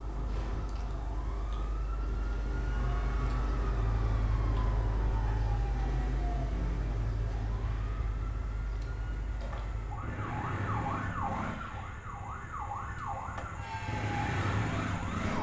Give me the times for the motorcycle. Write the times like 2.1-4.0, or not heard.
6.5-15.3.